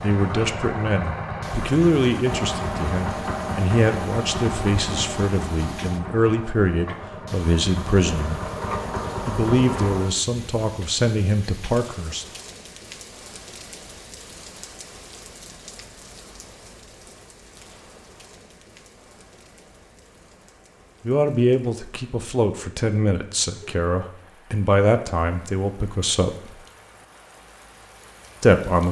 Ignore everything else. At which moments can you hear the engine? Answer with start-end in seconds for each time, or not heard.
0.0-10.1.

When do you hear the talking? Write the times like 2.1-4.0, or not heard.
0.0-8.4, 9.2-12.2, 21.1-26.6, 28.4-28.8.